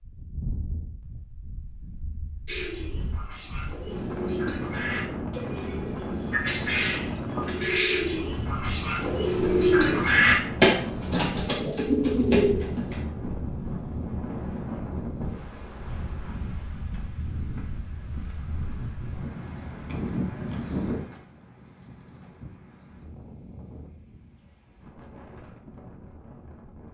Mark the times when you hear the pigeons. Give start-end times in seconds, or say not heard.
2.5-13.1.